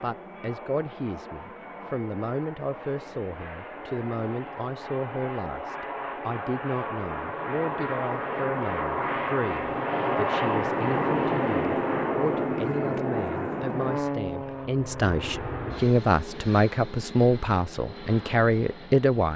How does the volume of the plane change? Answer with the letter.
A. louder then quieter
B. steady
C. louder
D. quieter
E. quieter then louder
A.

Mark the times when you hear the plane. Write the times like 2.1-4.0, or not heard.
0.0-19.3.